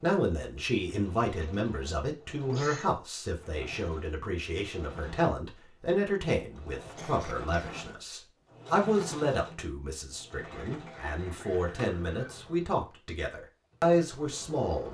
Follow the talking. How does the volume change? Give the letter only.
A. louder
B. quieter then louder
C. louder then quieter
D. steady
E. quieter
D.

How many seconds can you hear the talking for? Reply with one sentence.
The talking can be heard for 15 seconds in total.